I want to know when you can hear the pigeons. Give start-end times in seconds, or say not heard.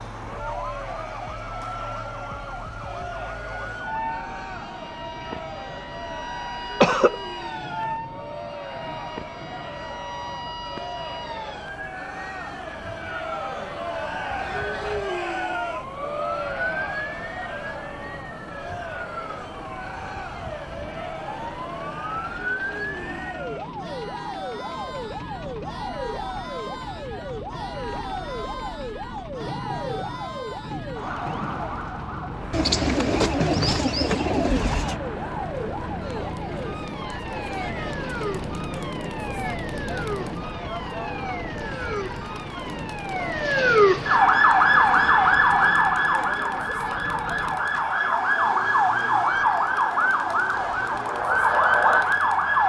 32.5-35.0.